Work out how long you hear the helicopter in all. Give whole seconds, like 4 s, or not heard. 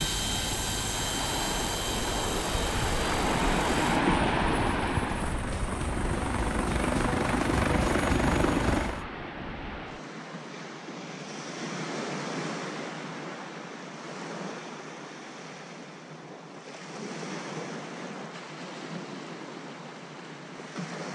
9 s.